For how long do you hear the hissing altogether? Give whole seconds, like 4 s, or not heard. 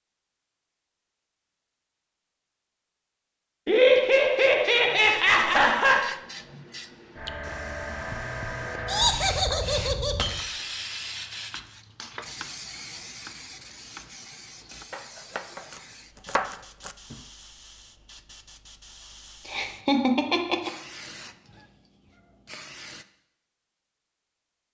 19 s.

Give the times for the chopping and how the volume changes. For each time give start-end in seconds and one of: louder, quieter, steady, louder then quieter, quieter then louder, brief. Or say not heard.
11.5-17.2 louder.